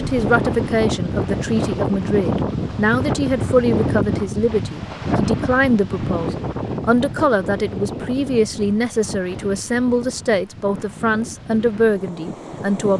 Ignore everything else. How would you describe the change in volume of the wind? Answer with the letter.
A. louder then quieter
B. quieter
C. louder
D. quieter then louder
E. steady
B.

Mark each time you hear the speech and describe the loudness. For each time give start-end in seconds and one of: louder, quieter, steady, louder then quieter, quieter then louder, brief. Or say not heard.
0.0-12.9 steady.